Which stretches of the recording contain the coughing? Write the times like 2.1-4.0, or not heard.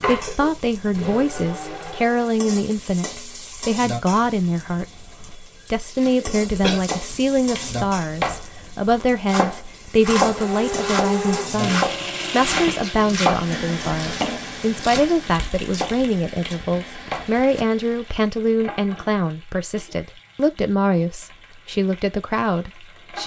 6.2-6.8, 16.9-17.7.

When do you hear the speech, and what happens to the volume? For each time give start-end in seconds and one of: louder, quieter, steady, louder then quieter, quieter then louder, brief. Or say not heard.
0.0-23.2 steady.